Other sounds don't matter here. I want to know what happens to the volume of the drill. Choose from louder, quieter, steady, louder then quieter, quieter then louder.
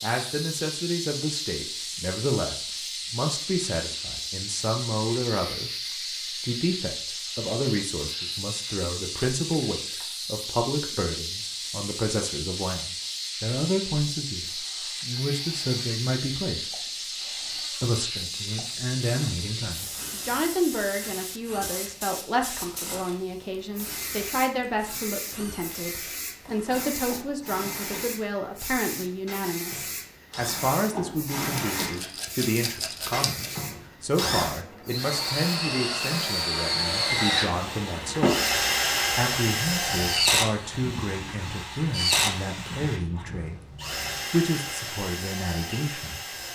louder.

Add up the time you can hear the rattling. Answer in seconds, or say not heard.
2 s.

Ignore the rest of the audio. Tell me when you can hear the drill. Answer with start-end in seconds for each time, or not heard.
14.6-46.4.